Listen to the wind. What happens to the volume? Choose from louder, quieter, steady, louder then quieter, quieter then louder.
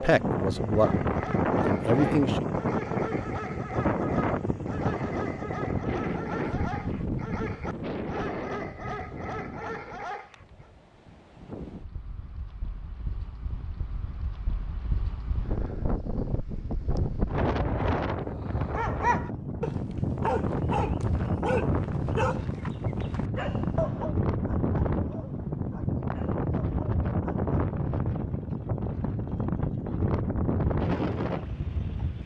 quieter then louder.